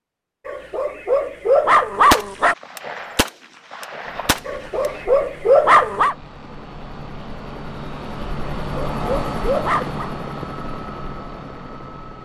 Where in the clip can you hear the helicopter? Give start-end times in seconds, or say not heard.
4.0-12.2.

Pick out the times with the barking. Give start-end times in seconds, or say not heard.
0.5-2.5, 4.5-6.2, 8.4-10.1.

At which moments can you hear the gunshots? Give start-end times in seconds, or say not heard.
2.1-5.0.